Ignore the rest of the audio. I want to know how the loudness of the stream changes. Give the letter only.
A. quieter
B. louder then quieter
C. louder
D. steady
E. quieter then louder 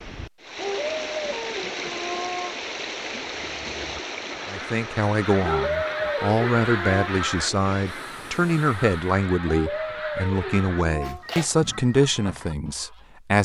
A.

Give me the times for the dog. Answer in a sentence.
You can hear the dog from 0.6 to 2.5 s, from 5.4 to 7.1 s and from 9.4 to 11.2 s.